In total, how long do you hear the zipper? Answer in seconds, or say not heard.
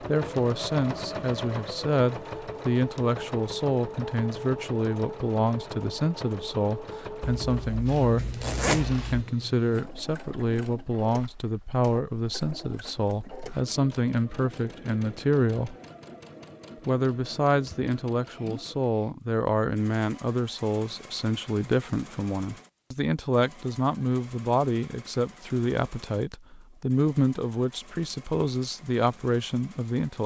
2 s.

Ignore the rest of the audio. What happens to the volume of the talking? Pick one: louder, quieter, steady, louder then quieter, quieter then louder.
steady.